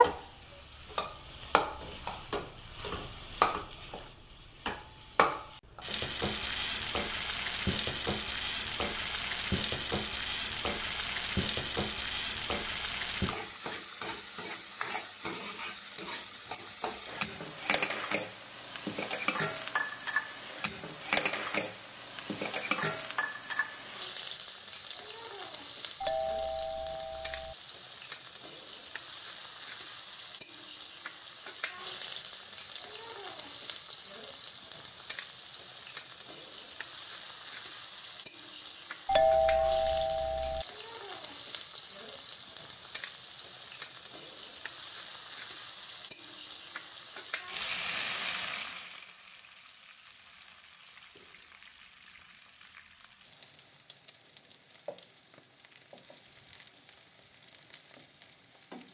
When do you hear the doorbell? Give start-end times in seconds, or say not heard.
26.0-27.6, 39.0-40.6.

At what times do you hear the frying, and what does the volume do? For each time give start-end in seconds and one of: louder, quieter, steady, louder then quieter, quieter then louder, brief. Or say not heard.
0.0-58.8 quieter.